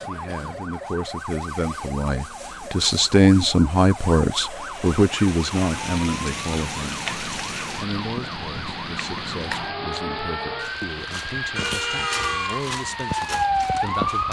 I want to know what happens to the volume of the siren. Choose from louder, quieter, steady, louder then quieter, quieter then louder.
louder.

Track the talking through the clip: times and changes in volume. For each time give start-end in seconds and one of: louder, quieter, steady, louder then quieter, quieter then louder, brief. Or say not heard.
0.1-7.2 louder then quieter
7.8-14.2 steady.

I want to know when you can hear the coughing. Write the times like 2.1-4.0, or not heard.
not heard.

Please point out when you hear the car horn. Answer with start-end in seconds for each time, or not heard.
11.6-12.7.